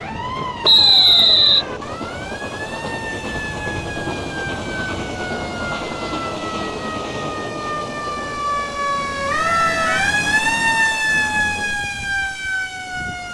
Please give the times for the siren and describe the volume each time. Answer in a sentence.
The siren can be heard from 0.0 to 13.2 s, getting louder.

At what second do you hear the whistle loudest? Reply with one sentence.
The loudest moment of the whistle is at 1 second.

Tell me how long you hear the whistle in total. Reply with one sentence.
You can hear the whistle for 3 seconds altogether.